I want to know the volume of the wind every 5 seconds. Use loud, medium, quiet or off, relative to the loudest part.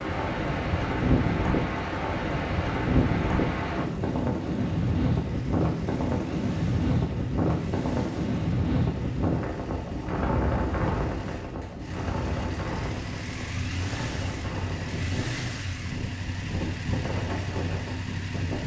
loud, loud, medium, medium.